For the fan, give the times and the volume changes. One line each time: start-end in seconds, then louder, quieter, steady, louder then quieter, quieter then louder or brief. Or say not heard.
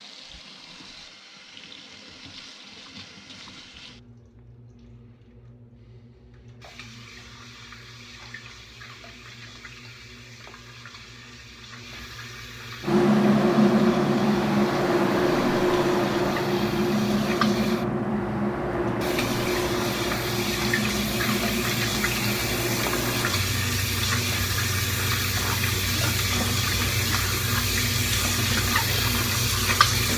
12.8-30.1 quieter.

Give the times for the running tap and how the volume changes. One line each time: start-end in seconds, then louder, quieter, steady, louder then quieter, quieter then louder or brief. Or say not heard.
0.0-30.1 louder.